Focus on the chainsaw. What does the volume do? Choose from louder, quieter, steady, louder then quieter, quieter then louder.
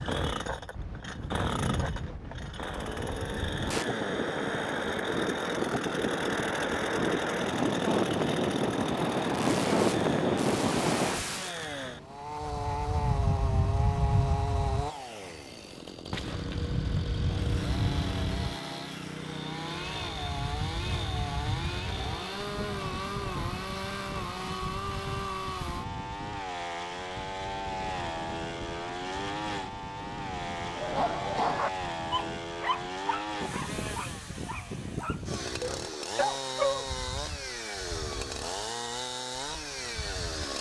steady.